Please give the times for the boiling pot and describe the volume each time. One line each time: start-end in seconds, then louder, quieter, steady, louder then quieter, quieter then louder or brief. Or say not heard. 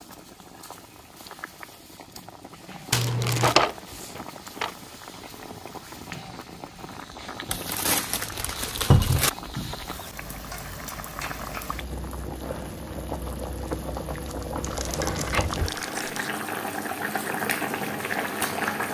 0.0-18.8 louder.